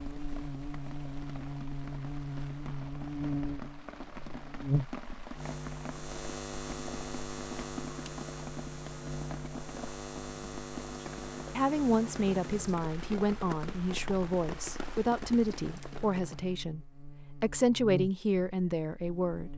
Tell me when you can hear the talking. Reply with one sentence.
You can hear the talking from 11.1 to 19.5 s.